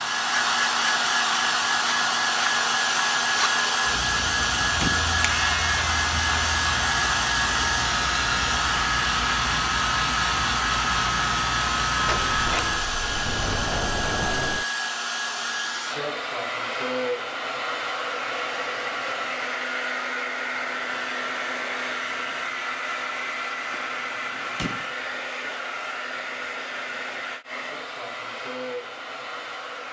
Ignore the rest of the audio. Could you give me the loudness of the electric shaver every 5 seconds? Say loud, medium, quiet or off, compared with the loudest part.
medium, loud, loud, off, off, off.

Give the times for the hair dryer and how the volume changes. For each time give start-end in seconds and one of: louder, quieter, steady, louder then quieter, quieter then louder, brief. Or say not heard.
0.0-29.8 quieter.